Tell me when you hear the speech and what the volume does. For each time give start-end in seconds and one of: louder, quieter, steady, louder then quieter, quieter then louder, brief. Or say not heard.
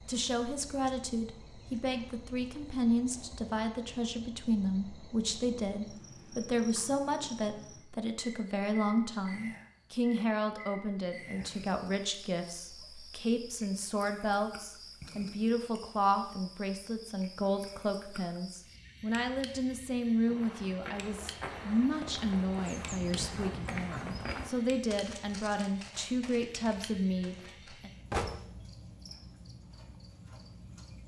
0.1-27.9 steady.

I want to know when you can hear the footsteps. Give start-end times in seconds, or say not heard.
20.2-27.8.